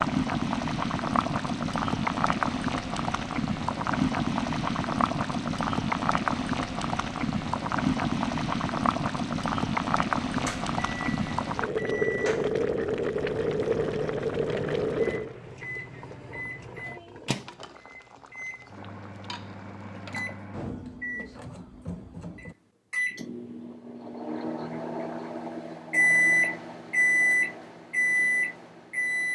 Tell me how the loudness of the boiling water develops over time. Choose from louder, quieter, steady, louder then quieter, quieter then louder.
quieter.